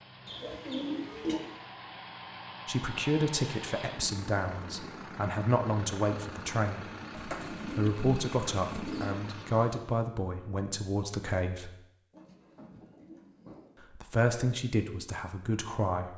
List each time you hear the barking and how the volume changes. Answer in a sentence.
You can't hear the barking here.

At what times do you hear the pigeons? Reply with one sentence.
You can hear the pigeons from 0.2 to 1.4 s, from 7.1 to 9.2 s and from 12.1 to 13.8 s.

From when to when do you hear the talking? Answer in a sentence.
You can hear the talking from 2.6 to 6.8 s, from 7.7 to 11.8 s and from 13.9 to 16.1 s.